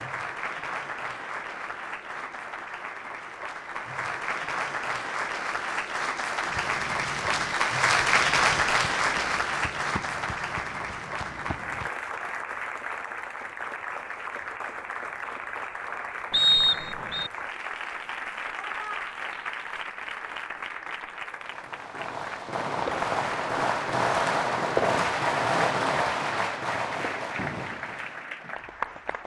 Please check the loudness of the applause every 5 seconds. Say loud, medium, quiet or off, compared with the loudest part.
medium, loud, medium, medium, medium, medium.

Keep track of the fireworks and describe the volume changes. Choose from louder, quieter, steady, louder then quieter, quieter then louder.
louder then quieter.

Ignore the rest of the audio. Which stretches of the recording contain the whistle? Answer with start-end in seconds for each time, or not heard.
16.3-17.3.